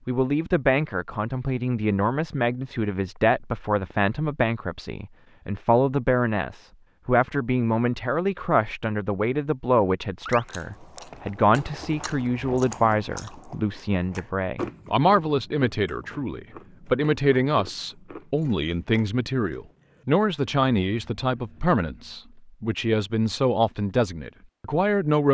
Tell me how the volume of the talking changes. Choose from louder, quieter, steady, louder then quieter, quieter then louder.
steady.